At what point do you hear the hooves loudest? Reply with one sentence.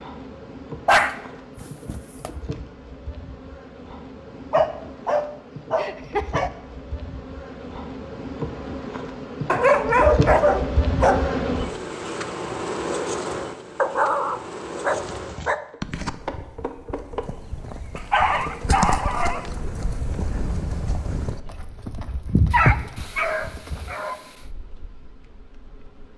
The volume of the hooves peaks at 23 seconds.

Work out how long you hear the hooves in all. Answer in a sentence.
You can hear the hooves for 9 seconds altogether.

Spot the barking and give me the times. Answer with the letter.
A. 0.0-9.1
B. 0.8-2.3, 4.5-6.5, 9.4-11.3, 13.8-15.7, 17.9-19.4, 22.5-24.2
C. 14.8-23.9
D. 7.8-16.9
B.